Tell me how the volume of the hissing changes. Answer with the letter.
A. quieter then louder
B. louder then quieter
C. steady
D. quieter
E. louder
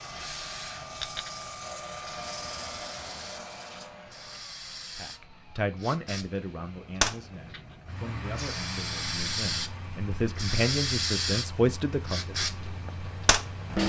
E.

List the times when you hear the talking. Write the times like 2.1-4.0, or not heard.
5.0-12.3.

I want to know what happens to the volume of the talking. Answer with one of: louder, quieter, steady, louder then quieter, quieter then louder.
quieter then louder.